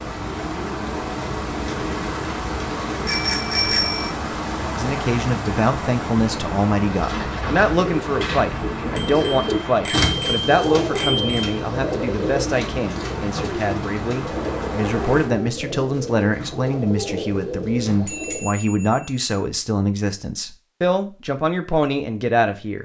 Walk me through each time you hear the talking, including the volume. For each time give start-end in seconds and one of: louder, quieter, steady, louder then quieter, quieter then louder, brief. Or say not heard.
4.8-22.8 steady.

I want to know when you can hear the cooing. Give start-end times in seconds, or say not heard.
0.0-3.4, 6.8-18.6.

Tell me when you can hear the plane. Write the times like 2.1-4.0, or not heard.
not heard.